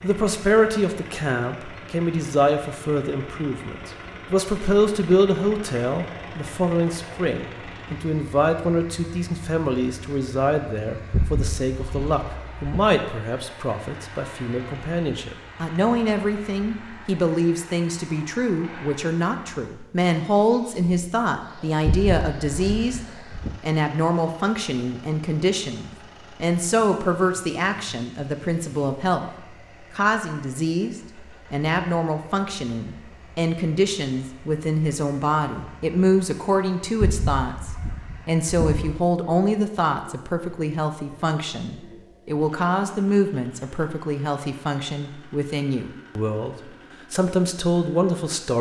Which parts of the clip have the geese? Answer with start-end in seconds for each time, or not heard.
11.1-12.8, 21.9-23.6, 37.0-39.0.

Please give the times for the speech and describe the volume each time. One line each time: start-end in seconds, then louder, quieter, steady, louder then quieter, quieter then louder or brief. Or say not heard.
0.0-29.3 steady
29.9-48.5 steady.